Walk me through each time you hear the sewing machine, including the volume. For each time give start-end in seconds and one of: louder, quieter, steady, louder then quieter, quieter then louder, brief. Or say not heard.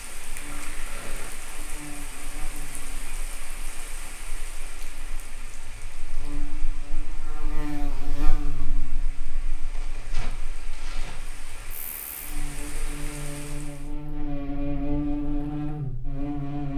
not heard.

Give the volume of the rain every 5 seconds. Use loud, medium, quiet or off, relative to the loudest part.
loud, medium, loud, off.